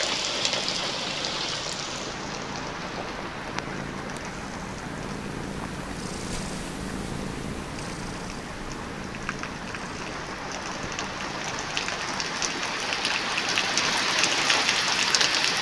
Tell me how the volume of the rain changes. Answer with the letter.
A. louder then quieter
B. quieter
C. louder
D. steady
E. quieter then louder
E.